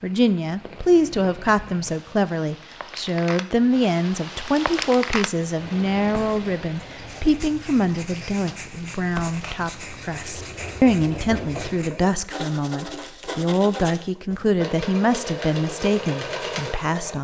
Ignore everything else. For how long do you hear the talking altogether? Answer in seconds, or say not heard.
17 s.